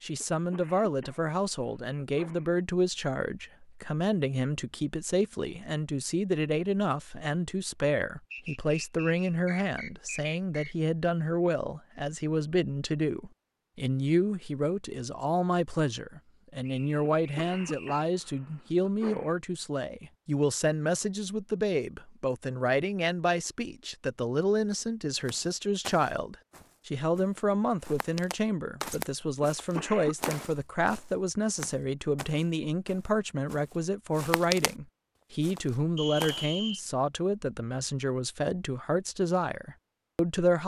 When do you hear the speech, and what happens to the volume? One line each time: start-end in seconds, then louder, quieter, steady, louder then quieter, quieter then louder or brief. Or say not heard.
0.0-40.6 steady.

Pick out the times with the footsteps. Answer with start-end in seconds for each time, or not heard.
25.2-34.7, 35.4-36.5.